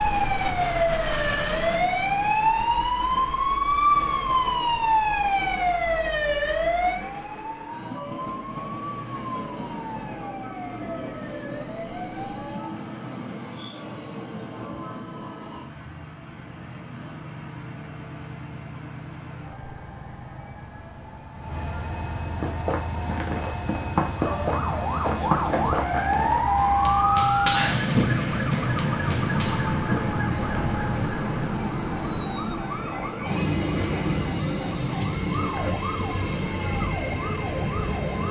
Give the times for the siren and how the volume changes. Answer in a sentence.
You can hear the siren from 0.0 to 12.7 s, getting quieter; and from 24.1 to 38.2 s, getting quieter.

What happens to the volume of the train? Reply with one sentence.
The loudness of the train goes up.